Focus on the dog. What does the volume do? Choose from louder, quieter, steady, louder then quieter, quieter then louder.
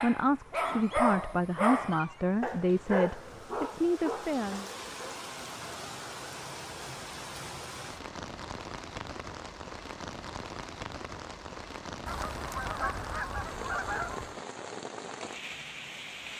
quieter.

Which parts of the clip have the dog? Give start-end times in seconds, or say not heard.
0.0-5.2.